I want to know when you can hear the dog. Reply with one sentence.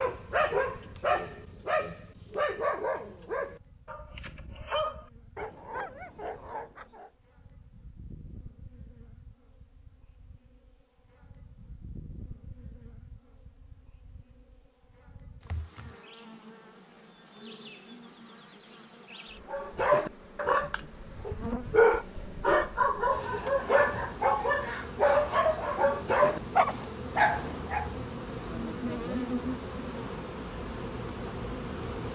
The dog can be heard from 0.0 to 7.1 s and from 19.5 to 27.9 s.